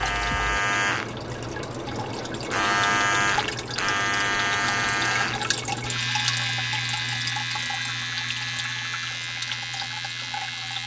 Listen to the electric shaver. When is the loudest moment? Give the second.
3 s.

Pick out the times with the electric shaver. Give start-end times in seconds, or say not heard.
0.0-10.8.